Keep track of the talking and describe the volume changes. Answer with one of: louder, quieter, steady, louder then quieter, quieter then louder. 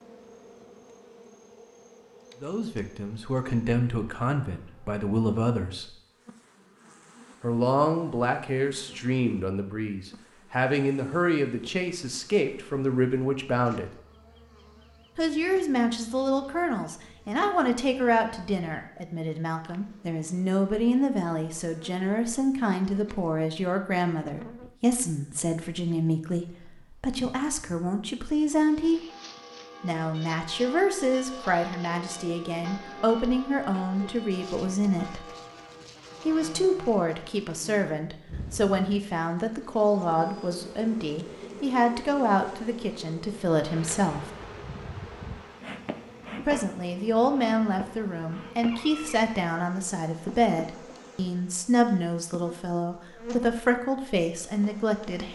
steady.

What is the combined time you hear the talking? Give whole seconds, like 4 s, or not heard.
46 s.